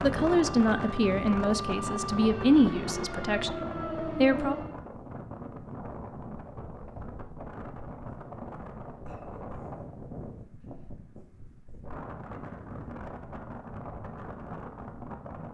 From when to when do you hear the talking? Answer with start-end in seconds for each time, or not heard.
0.0-4.6.